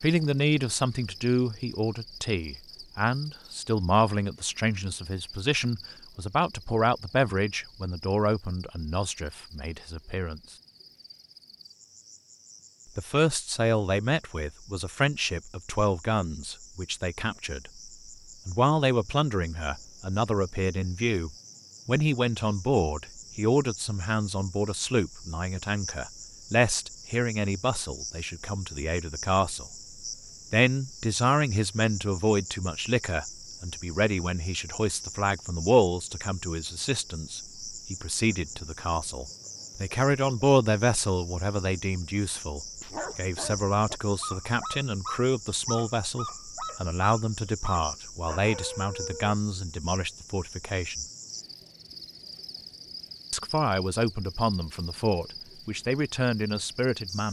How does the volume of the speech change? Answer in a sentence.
The loudness of the speech stays about the same.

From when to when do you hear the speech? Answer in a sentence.
You can hear the speech from 0.0 to 10.6 s, from 12.9 to 29.7 s, from 30.5 to 51.0 s and from 53.3 to 57.2 s.